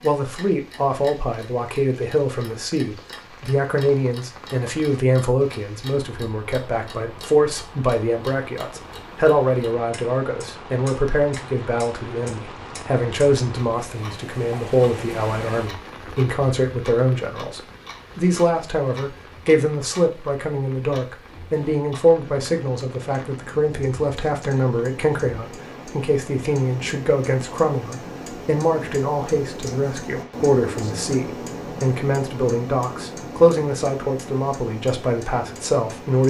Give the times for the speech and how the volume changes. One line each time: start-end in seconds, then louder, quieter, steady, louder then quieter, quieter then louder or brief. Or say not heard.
0.0-36.2 steady.